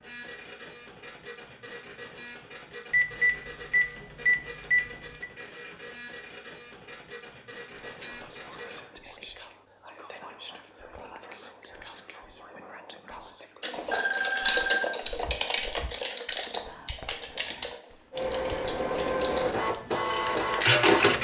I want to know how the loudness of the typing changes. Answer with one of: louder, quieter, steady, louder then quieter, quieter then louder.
quieter.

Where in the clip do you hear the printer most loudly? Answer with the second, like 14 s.
21 s.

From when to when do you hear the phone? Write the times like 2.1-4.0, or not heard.
2.9-5.3, 13.9-14.9.